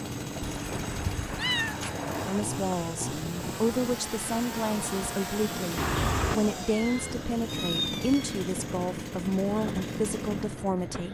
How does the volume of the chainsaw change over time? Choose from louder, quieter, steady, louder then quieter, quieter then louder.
steady.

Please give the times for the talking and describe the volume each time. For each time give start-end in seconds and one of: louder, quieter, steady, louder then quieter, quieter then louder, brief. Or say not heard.
2.2-11.0 steady.